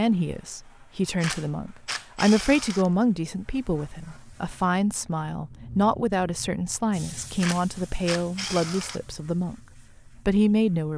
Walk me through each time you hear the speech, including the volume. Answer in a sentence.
You can hear the speech from 0.0 to 10.9 s, at a steady volume.